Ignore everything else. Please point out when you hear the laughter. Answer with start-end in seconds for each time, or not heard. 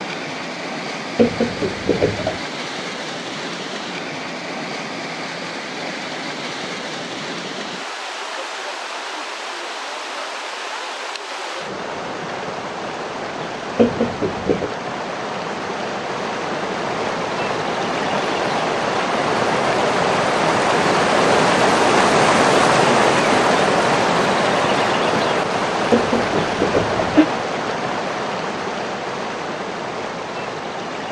1.1-2.4, 13.8-14.7, 25.9-27.2.